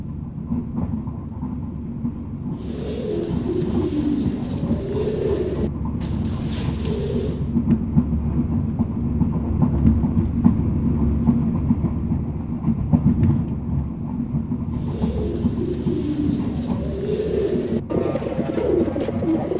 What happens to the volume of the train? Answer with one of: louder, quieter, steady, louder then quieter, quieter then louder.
louder then quieter.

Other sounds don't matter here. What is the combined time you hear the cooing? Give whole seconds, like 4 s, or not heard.
10 s.